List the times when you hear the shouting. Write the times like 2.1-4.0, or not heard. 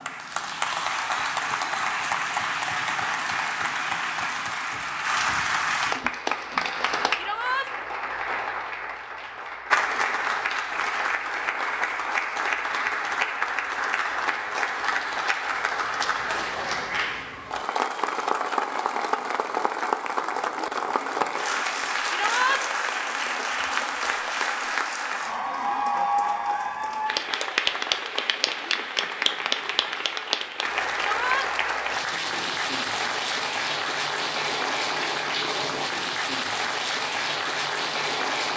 7.2-7.7, 22.1-22.6, 30.9-31.5.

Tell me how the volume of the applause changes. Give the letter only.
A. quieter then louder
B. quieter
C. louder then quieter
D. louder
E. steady
E.